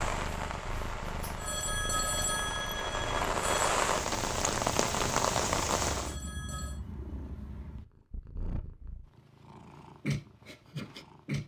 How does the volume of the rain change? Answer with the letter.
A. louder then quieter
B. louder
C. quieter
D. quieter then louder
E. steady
B.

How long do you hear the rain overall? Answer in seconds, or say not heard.
6 s.